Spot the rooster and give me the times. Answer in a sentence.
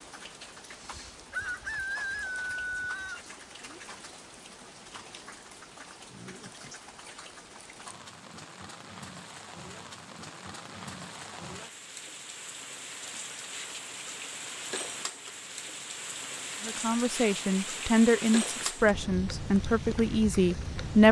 You can hear the rooster from 0.8 to 3.8 s.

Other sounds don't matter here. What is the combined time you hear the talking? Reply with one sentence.
The talking can be heard for 4 seconds in total.